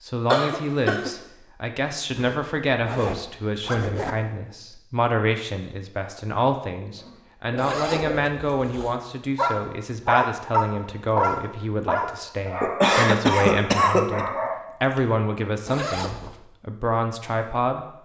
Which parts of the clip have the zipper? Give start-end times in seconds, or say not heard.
2.1-4.2, 7.5-8.9, 15.7-16.4.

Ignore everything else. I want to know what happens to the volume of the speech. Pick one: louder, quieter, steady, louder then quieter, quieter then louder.
steady.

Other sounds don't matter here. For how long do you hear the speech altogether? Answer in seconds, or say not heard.
18 s.